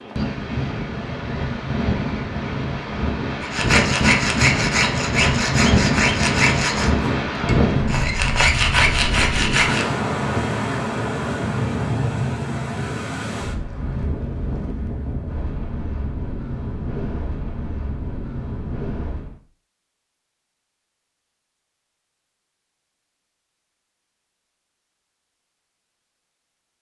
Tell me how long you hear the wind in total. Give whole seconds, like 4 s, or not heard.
19 s.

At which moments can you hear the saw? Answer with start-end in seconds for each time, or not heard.
3.4-9.9.